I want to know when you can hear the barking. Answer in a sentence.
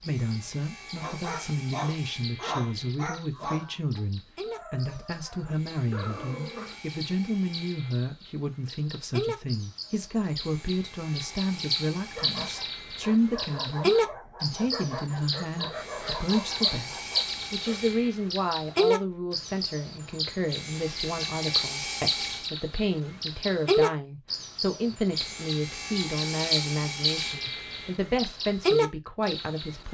You can hear the barking from 1.0 to 6.8 s and from 12.1 to 17.8 s.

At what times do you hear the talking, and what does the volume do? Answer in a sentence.
You can hear the talking from 0.0 to 29.8 s, at a steady volume.